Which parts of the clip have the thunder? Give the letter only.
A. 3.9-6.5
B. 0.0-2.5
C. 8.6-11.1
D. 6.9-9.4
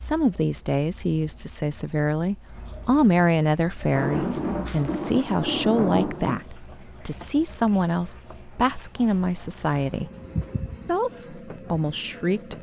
A.